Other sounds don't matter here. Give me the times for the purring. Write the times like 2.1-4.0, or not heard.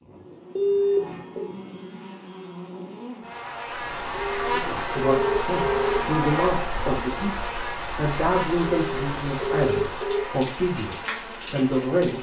not heard.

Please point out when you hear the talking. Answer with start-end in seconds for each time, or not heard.
4.5-12.1.